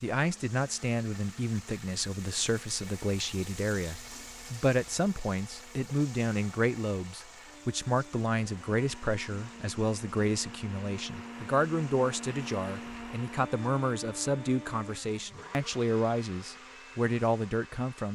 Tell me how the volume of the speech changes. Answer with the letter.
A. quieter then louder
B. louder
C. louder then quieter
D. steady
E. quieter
D.